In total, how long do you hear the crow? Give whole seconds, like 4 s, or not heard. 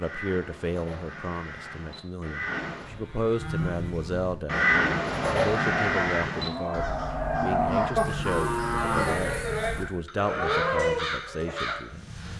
11 s.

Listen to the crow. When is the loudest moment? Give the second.
5 s.